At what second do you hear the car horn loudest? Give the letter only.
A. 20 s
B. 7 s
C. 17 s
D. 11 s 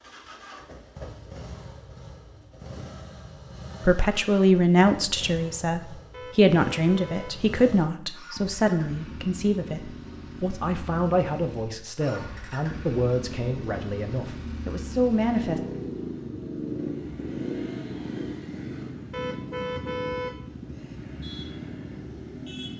A.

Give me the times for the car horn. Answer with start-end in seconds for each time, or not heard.
6.1-7.3, 19.1-21.1.